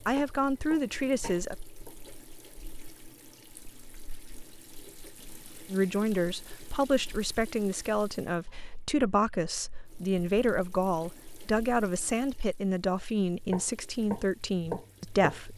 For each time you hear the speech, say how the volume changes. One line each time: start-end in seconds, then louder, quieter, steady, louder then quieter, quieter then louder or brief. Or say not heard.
0.1-1.6 brief
5.7-15.5 steady.